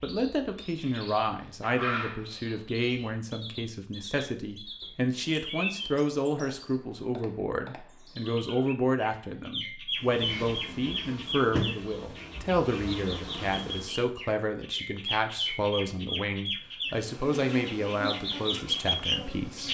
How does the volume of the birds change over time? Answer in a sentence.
The volume of the birds goes up.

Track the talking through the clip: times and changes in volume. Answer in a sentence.
You can hear the talking from 0.0 to 19.6 s, at a steady volume.